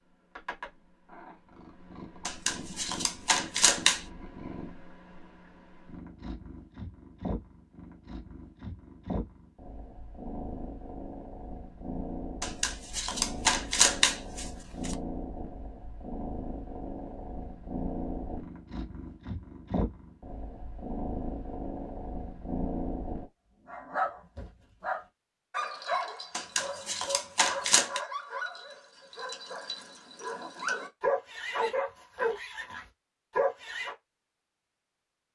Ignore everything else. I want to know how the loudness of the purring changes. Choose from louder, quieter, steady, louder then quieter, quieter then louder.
louder.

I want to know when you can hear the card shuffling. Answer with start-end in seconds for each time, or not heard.
2.2-4.0, 12.4-14.9, 26.4-28.0.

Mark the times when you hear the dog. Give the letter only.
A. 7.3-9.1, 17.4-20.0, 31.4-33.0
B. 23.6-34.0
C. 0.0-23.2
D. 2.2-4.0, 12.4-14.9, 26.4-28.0
B.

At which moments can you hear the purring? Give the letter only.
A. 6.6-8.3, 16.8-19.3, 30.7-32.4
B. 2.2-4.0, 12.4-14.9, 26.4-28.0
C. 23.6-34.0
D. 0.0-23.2
D.